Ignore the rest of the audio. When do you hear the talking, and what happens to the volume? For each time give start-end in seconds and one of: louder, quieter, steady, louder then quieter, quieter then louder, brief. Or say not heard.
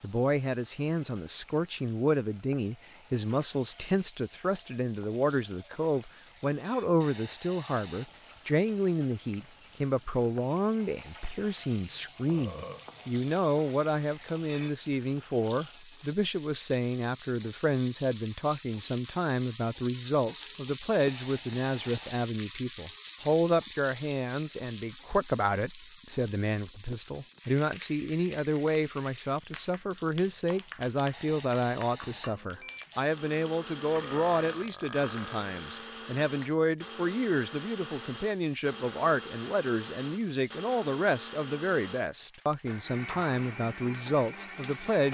0.0-45.0 steady.